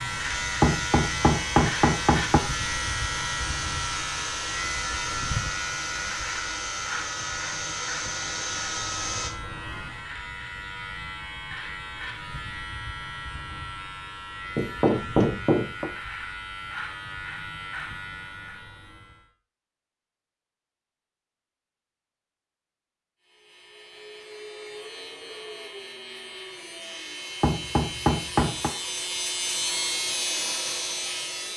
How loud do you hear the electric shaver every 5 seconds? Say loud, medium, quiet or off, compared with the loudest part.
loud, loud, medium, medium, quiet, loud, loud.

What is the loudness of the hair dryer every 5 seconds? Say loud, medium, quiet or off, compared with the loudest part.
loud, loud, off, off, off, medium, loud.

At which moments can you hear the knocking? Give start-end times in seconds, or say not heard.
0.6-2.4, 14.6-15.9, 27.4-28.7.